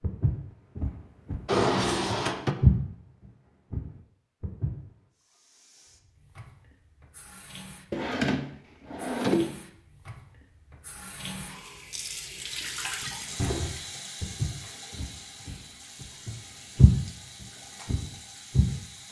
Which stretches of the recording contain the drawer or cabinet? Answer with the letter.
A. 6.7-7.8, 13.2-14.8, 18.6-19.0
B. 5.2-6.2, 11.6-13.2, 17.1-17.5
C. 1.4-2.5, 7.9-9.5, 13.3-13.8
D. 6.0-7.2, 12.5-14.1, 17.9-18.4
C.